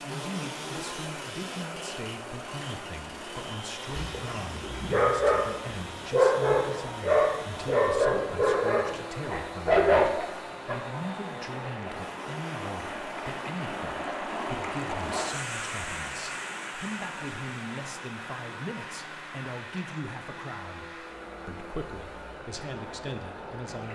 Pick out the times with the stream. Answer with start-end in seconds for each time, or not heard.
0.0-23.9.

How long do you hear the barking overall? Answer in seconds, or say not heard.
7 s.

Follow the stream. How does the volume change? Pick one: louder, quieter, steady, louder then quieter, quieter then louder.
louder then quieter.